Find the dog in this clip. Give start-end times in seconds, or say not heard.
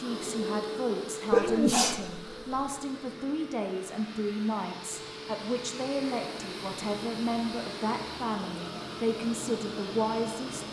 not heard.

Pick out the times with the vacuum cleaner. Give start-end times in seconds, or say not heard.
0.0-10.6.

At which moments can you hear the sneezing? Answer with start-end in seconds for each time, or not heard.
1.3-2.7.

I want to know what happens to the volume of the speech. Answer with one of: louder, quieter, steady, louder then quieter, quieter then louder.
steady.